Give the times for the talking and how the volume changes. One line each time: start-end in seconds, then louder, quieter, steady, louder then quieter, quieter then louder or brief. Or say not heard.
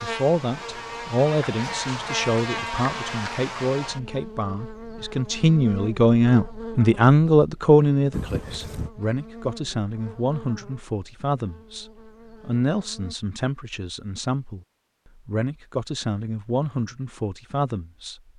0.0-14.6 louder then quieter
15.2-18.2 brief.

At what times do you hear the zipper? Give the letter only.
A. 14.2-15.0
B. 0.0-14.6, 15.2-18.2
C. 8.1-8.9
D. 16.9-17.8
C.